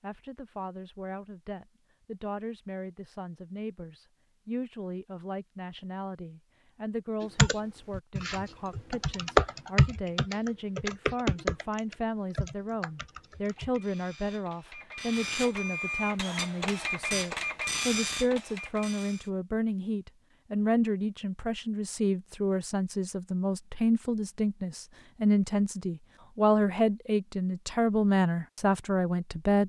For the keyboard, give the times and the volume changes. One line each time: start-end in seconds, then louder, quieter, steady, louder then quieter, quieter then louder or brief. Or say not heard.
7.3-13.8 louder then quieter.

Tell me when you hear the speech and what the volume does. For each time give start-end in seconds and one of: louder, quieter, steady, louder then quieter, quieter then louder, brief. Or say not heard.
0.0-29.6 louder.